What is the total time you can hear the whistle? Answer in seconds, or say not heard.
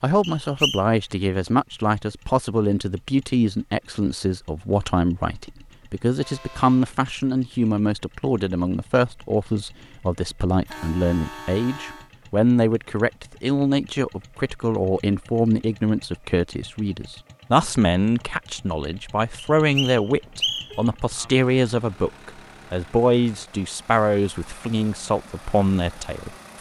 2 s.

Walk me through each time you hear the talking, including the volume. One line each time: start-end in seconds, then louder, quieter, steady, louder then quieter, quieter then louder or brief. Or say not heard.
0.0-26.3 steady.